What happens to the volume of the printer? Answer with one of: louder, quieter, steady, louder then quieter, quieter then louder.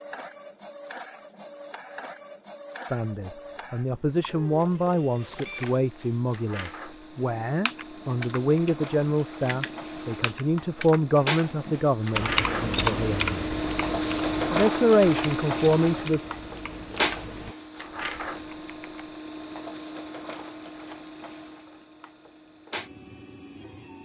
louder then quieter.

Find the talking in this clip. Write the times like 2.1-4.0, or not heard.
2.9-13.3, 14.5-16.2.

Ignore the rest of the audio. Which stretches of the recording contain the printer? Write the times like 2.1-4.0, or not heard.
0.0-24.0.